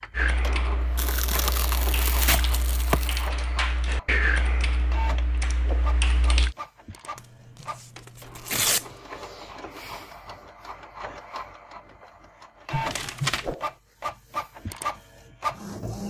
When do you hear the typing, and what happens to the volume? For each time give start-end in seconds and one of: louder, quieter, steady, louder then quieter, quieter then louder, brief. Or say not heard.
0.1-6.5 louder then quieter.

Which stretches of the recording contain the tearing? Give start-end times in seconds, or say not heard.
0.9-3.3, 7.2-8.8, 12.7-13.6.